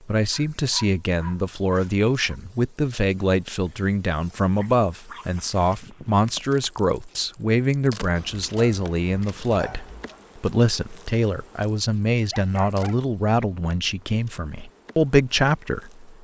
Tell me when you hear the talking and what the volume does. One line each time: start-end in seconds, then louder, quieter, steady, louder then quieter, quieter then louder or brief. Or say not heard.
0.1-16.1 steady.